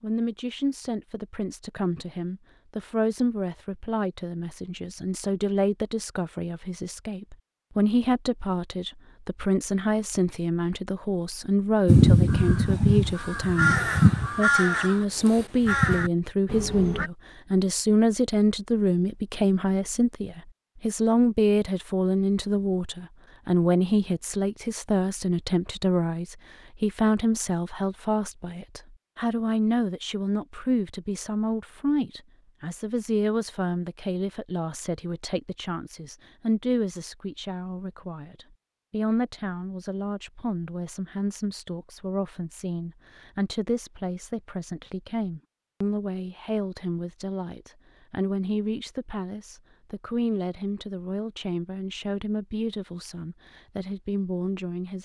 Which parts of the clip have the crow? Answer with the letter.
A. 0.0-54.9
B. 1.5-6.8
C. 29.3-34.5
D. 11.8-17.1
D.